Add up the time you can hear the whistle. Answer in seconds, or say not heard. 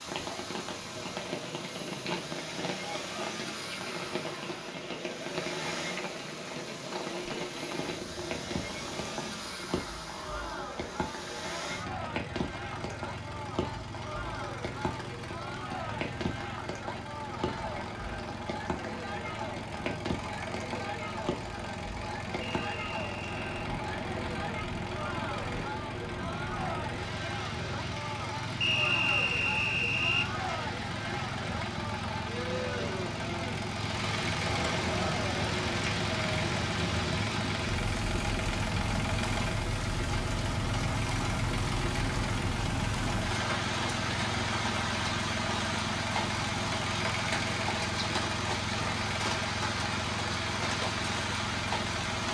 3 s.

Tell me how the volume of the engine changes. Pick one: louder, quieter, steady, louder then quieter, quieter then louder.
louder.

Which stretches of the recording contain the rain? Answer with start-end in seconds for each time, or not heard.
0.0-52.2.